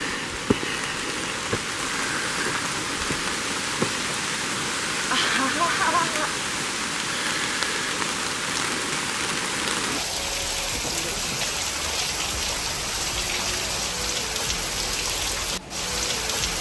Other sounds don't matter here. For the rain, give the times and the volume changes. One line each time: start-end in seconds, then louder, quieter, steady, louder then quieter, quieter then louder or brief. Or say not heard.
0.0-16.5 steady.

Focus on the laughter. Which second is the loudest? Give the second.
6 s.